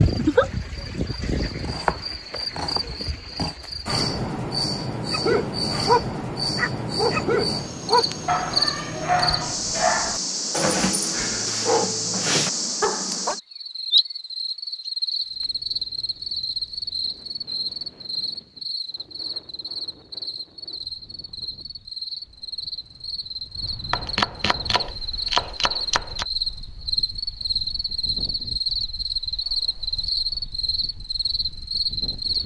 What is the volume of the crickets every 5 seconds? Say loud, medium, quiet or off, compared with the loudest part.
loud, loud, loud, loud, medium, loud, loud.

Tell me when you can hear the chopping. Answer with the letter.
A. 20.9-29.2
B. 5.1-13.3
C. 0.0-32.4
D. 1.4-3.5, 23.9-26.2
D.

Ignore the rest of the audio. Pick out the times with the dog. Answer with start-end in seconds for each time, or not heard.
5.1-13.3.